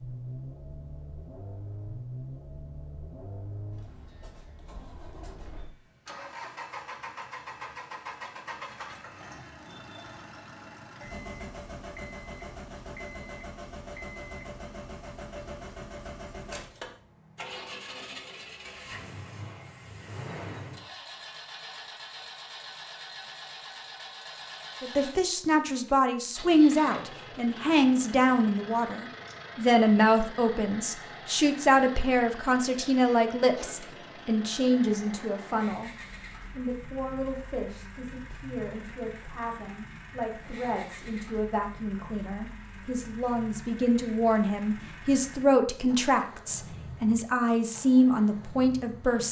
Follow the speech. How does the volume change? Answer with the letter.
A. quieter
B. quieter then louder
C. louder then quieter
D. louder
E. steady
B.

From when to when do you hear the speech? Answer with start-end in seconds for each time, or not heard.
24.8-49.2.